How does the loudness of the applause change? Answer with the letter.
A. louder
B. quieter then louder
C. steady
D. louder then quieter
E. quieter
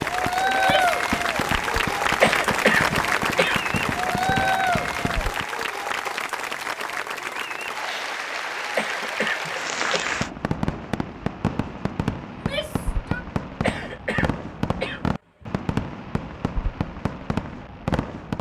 E.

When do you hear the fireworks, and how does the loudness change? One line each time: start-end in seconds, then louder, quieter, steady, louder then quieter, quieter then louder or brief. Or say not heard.
0.0-5.5 steady
10.1-18.3 steady.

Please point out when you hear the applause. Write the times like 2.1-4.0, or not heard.
0.0-10.3.